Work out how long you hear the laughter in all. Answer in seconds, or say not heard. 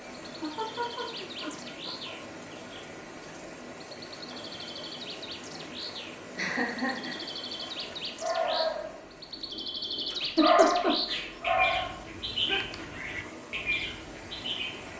4 s.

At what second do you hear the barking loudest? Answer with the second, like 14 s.
11 s.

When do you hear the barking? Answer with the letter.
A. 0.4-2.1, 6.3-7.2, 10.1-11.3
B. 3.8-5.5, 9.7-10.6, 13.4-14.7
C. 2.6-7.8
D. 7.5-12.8
D.